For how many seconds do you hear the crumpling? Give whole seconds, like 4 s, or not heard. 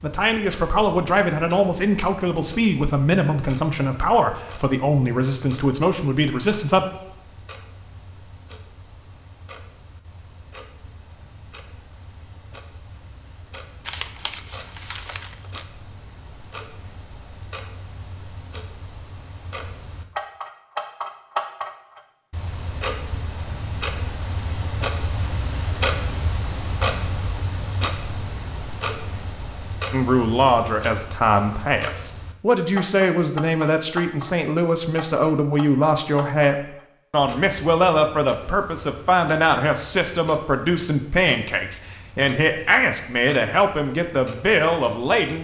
2 s.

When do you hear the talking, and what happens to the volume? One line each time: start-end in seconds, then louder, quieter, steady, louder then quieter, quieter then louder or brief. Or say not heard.
0.0-6.8 steady
29.9-45.3 steady.